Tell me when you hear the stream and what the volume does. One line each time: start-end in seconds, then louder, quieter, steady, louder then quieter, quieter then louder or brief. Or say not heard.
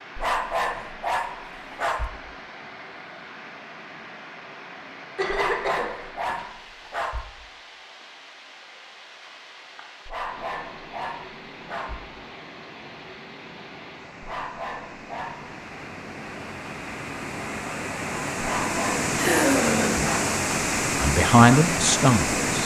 0.0-22.6 louder.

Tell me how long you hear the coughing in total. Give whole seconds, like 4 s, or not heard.
2 s.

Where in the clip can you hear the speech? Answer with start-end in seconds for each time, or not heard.
21.0-22.6.